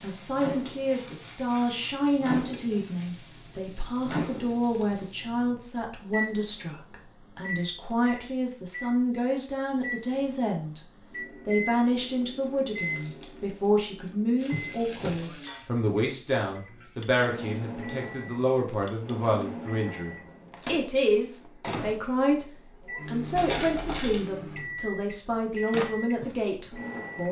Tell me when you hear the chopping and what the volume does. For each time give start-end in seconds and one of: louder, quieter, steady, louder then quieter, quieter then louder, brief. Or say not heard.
not heard.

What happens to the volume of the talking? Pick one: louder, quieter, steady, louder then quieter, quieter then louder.
steady.